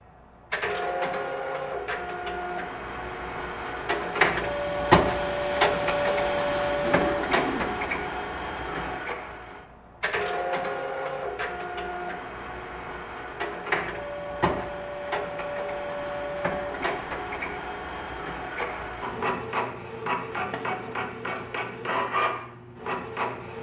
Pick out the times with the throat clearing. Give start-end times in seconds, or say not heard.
6.8-7.8.